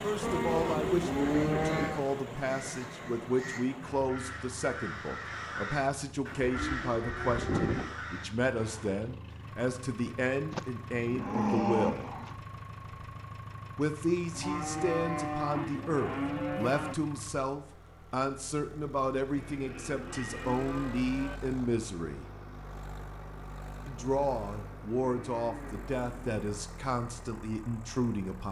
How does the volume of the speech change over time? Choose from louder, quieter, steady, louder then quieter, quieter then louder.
steady.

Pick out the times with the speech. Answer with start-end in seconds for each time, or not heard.
0.0-12.1, 13.8-22.2, 23.9-28.4.